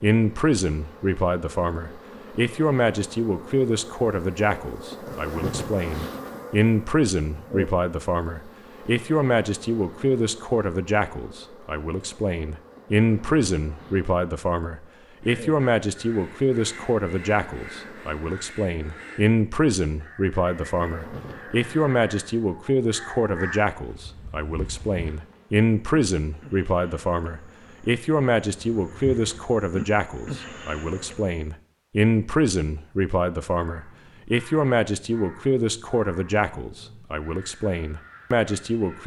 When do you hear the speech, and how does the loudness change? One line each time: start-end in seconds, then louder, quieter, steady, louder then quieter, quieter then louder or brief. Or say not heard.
0.0-39.0 steady.